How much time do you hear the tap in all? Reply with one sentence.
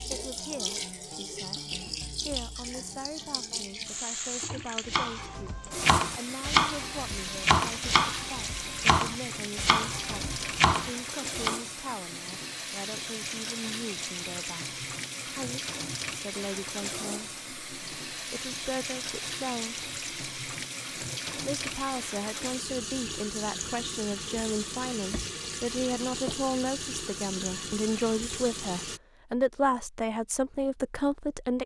You can hear the tap for 29 seconds altogether.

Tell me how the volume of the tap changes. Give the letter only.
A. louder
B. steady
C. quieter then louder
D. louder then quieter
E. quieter
B.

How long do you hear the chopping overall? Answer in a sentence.
The chopping can be heard for 7 seconds in total.